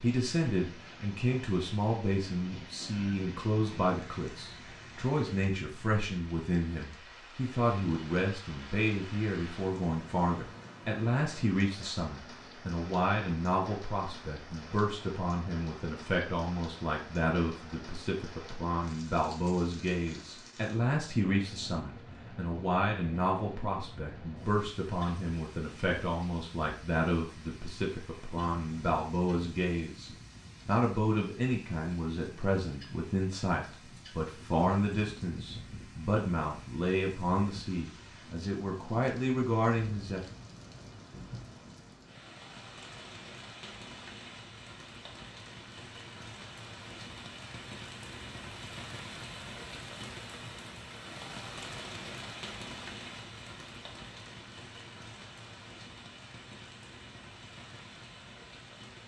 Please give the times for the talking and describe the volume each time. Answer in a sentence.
You can hear the talking from 0.0 to 40.2 s, at a steady volume.